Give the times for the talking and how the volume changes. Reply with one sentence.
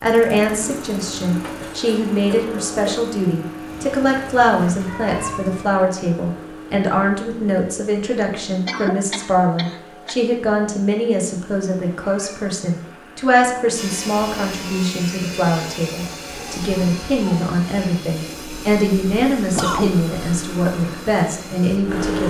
You can hear the talking from 0.0 to 22.2 s, at a steady volume.